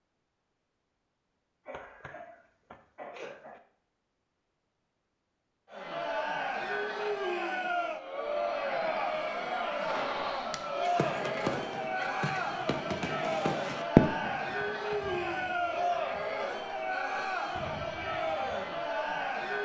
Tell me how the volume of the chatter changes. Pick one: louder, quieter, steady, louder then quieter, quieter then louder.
steady.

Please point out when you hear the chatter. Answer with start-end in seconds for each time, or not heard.
5.7-19.6.